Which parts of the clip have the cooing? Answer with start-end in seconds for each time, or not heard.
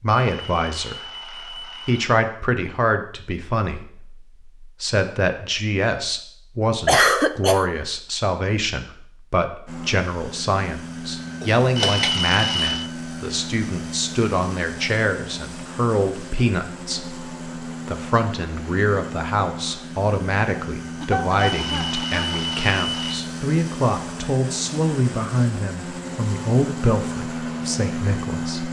not heard.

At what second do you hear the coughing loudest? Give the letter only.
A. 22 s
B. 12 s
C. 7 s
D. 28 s
C.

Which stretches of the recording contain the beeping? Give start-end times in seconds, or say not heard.
0.1-2.0, 11.8-12.9, 21.4-23.2.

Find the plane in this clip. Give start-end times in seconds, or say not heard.
9.7-28.6.